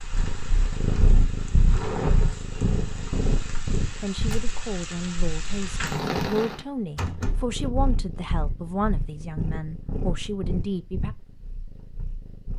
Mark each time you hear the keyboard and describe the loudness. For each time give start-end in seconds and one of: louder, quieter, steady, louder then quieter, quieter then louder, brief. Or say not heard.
not heard.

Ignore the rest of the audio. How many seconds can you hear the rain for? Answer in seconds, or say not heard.
7 s.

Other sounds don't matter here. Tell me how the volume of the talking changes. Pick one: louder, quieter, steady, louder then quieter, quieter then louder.
steady.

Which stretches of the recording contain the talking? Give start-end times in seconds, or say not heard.
4.0-11.2.